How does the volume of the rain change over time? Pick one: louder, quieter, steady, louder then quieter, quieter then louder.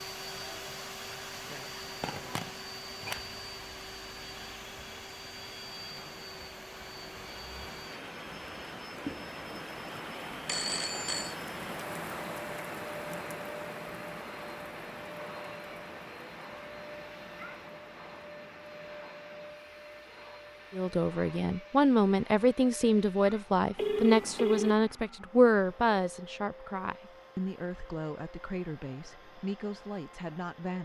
louder then quieter.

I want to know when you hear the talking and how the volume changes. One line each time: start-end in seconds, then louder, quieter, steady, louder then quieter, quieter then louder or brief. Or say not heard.
20.7-30.8 quieter.